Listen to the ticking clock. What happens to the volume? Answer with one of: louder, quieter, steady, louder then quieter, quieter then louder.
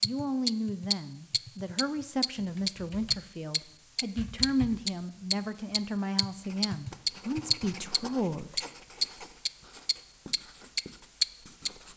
steady.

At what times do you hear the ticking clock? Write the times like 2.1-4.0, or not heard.
0.0-11.7.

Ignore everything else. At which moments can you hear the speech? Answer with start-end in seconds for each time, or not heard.
0.0-8.7.